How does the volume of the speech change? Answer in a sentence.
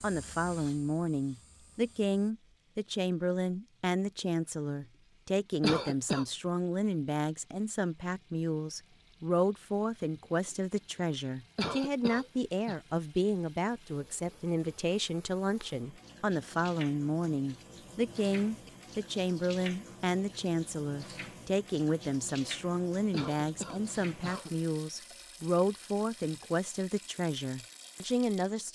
The volume of the speech stays about the same.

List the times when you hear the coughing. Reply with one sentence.
The coughing can be heard from 5.6 to 6.2 s, from 11.6 to 12.8 s and from 23.1 to 24.5 s.